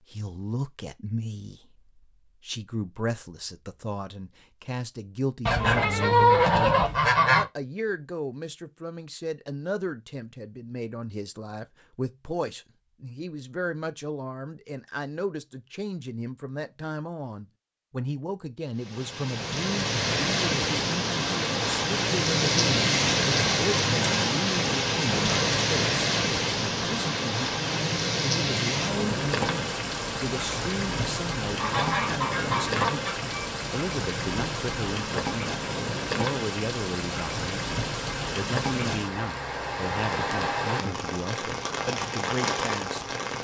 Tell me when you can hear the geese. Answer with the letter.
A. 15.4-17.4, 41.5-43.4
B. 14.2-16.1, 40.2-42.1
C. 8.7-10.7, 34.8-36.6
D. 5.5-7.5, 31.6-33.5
D.